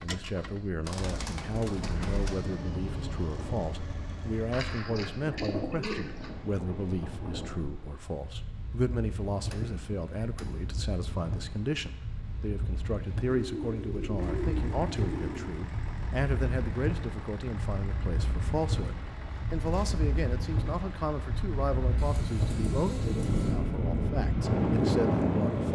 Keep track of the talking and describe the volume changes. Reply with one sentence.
The loudness of the talking stays about the same.